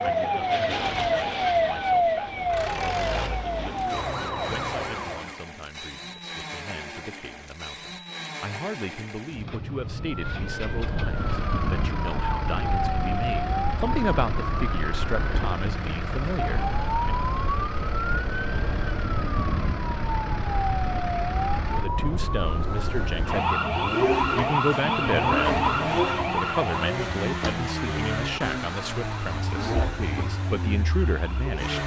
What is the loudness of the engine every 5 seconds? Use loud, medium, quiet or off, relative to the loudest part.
medium, medium, medium, medium, medium, loud, medium.